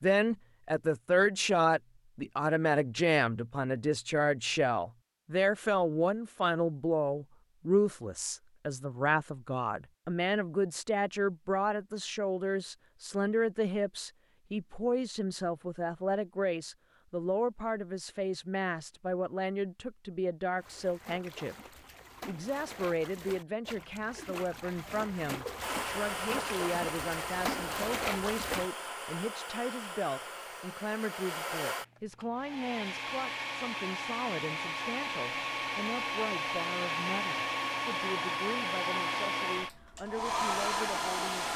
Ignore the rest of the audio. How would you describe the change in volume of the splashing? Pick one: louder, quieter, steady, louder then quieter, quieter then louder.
louder.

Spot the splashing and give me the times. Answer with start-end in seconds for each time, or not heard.
20.6-28.7.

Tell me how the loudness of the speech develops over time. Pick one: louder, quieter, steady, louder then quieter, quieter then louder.
quieter.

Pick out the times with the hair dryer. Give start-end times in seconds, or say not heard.
25.6-41.5.